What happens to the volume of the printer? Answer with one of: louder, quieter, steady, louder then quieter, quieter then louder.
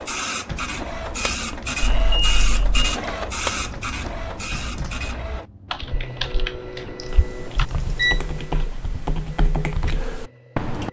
quieter.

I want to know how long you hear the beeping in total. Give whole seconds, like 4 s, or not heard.
2 s.